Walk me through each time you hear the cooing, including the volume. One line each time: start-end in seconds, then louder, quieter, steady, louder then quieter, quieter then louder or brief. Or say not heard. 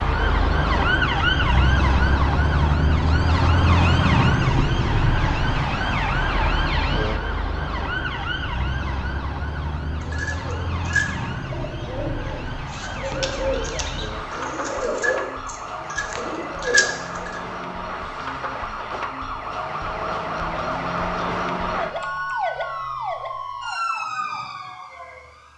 10.0-17.4 quieter then louder.